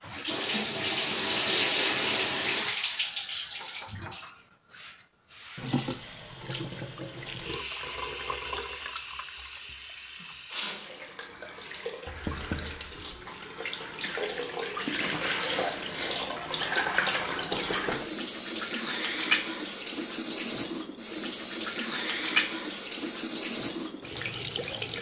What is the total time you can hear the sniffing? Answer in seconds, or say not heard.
2 s.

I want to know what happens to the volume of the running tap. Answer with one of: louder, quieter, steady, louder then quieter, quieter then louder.
quieter then louder.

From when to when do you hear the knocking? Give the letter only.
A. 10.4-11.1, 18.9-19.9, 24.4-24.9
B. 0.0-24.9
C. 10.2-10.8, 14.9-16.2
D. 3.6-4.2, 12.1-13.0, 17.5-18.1
D.